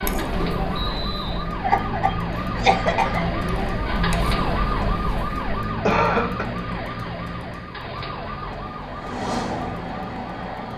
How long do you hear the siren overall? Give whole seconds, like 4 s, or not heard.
11 s.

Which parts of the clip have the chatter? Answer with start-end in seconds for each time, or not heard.
0.0-5.6.